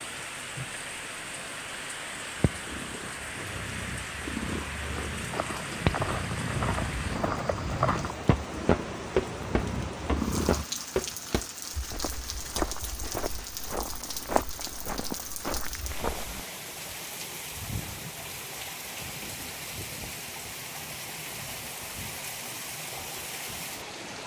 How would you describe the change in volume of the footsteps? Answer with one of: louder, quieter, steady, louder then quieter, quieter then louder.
louder then quieter.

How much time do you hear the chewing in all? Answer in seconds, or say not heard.
not heard.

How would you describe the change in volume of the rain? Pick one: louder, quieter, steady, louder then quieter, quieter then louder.
steady.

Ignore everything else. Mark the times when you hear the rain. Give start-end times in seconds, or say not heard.
0.0-24.2.